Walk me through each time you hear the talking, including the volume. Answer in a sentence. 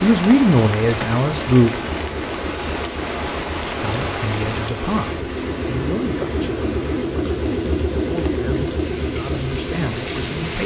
You can hear the talking briefly from 0.0 to 1.7 s; and from 3.8 to 10.6 s, getting quieter then louder.